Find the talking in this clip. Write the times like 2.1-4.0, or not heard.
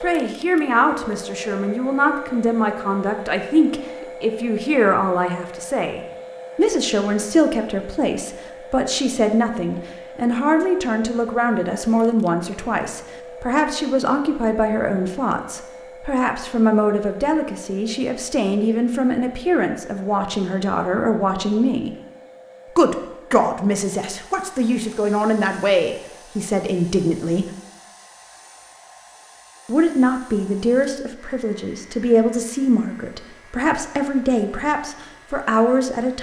0.0-21.9, 22.8-27.4, 29.6-36.1.